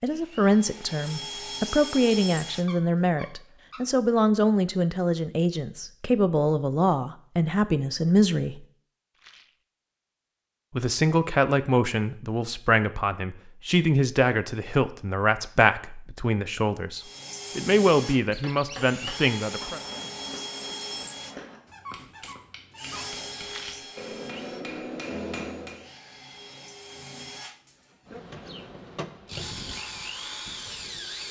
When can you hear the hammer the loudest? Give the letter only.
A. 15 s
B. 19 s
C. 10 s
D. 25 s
D.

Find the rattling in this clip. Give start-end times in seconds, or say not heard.
9.2-9.6, 23.4-23.9.